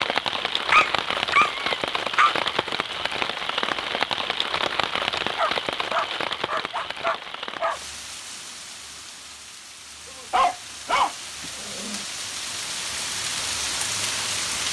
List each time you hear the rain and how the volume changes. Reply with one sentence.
The rain can be heard from 0.0 to 14.6 s, getting quieter then louder.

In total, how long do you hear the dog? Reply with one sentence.
The dog can be heard for 6 seconds in total.